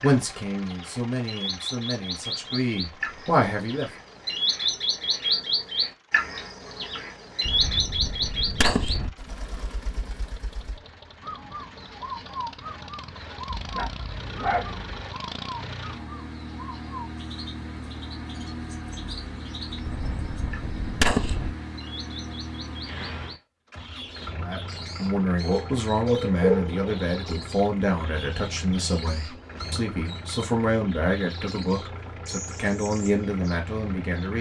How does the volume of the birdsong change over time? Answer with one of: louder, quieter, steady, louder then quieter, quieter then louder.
quieter.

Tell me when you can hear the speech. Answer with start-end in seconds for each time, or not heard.
0.0-3.9, 24.4-34.3.